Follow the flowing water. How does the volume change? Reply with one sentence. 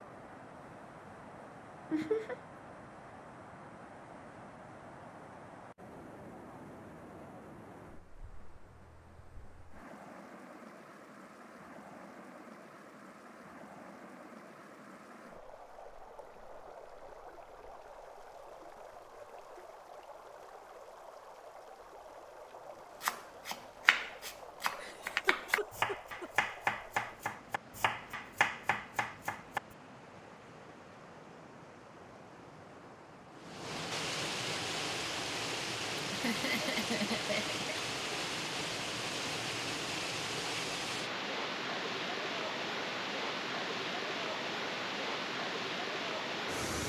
The loudness of the flowing water goes up.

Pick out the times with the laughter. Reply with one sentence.
The laughter can be heard from 1.9 to 2.4 s, from 24.6 to 26.3 s and from 36.1 to 37.5 s.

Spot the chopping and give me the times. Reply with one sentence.
The chopping can be heard from 23.0 to 29.6 s.